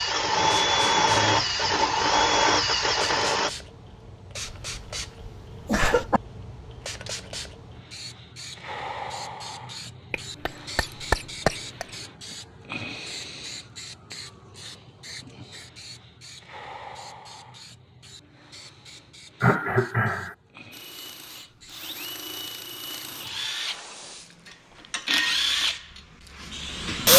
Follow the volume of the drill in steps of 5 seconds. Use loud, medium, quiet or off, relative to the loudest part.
loud, off, off, off, quiet, loud.